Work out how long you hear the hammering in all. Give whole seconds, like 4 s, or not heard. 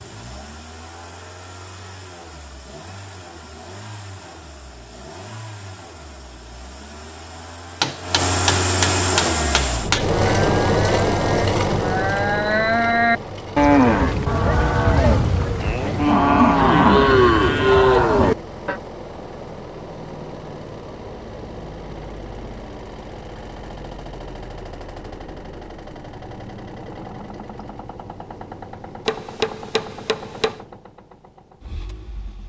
4 s.